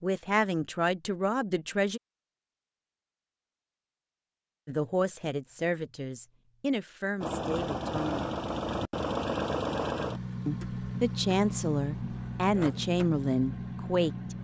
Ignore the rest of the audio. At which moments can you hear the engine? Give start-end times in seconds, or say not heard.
7.2-14.3.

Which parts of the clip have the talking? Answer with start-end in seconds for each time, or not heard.
0.0-2.0, 4.7-8.3, 10.4-14.3.